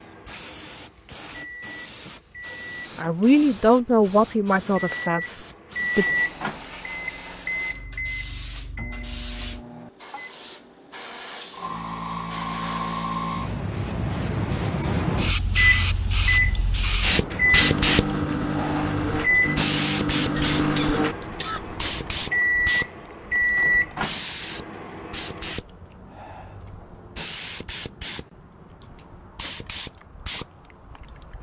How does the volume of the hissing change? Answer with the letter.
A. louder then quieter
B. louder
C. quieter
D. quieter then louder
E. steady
A.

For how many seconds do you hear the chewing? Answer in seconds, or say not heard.
not heard.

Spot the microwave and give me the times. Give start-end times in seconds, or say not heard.
0.0-10.3, 15.6-25.6.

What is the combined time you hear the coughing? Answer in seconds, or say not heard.
2 s.